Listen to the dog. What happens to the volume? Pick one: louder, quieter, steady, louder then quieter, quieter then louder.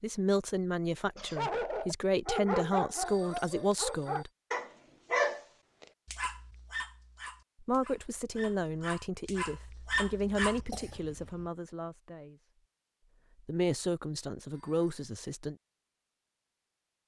quieter then louder.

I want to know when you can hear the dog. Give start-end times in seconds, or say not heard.
1.4-10.9.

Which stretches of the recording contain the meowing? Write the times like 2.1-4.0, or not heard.
not heard.